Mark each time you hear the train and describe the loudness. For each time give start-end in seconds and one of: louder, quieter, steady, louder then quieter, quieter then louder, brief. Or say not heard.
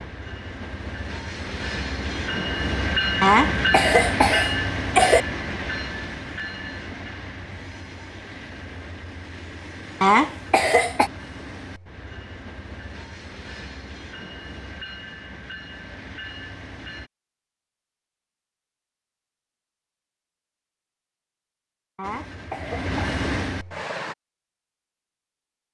0.0-17.1 quieter
22.0-24.1 brief.